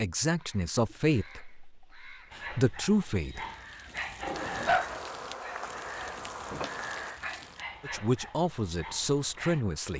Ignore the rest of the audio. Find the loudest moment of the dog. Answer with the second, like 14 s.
5 s.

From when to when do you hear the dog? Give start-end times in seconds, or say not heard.
2.3-9.6.